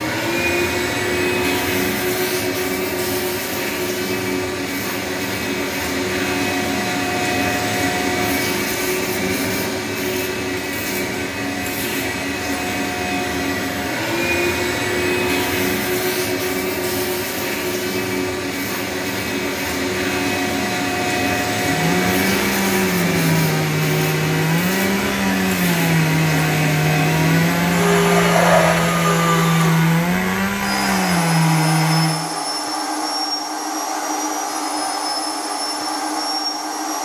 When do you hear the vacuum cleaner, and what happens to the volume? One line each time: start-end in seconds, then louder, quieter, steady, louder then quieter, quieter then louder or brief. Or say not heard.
0.0-36.9 steady.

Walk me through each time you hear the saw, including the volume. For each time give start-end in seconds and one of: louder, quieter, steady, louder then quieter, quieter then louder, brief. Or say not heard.
21.6-32.3 steady.